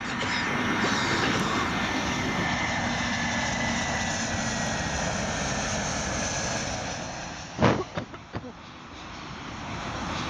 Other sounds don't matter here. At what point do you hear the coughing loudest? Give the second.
8 s.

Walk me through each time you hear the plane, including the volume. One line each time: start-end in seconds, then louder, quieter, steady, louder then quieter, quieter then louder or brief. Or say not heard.
0.0-10.2 quieter.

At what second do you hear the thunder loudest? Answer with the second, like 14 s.
1 s.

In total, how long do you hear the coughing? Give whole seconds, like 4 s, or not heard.
3 s.